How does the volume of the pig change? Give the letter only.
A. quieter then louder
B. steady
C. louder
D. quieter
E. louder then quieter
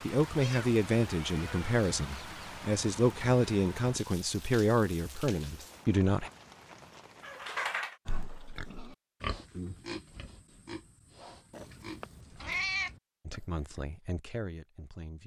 D.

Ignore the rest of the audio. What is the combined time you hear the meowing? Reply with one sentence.
The meowing can be heard for 4 seconds in total.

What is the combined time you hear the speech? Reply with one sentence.
You can hear the speech for 8 seconds altogether.